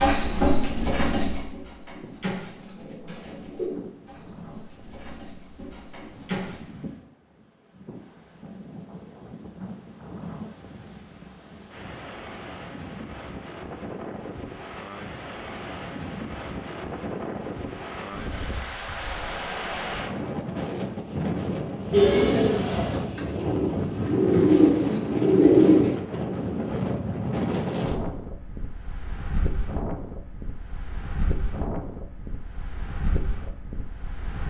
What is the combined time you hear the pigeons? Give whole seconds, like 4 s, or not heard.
11 s.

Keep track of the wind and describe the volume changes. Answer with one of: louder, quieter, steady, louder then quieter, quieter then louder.
louder then quieter.